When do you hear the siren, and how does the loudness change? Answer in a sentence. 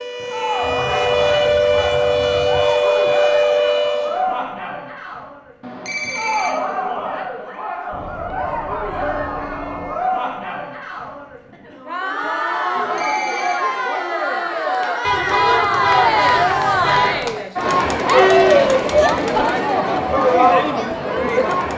The siren can be heard from 0.0 to 4.2 s, getting louder.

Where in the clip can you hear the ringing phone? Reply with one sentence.
The ringing phone can be heard from 5.6 to 7.0 s and from 12.8 to 13.6 s.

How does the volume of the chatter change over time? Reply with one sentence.
The loudness of the chatter goes up.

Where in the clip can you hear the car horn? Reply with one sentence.
The car horn can be heard from 0.6 to 2.6 s, from 7.9 to 9.9 s and from 15.0 to 17.4 s.